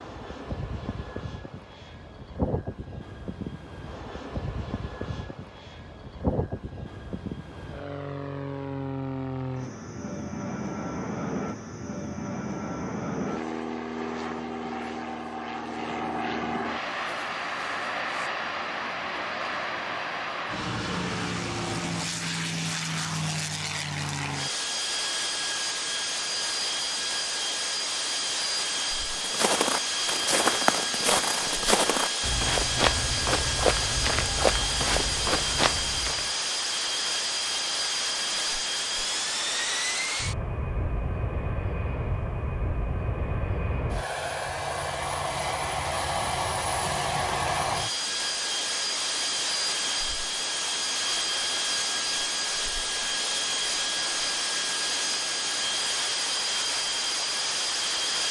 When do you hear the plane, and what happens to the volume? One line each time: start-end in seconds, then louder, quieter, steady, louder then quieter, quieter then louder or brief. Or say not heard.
0.0-58.2 louder.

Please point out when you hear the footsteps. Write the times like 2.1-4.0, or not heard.
29.1-36.3.